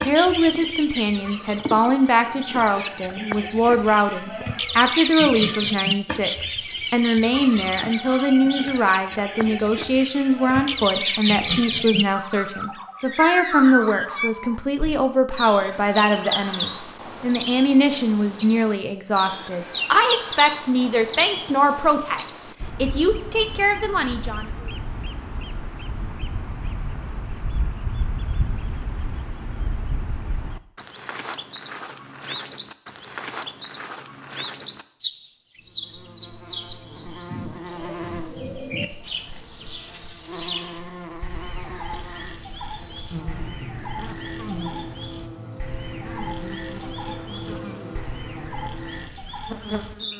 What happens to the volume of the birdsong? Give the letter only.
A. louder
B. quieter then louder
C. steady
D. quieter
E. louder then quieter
D.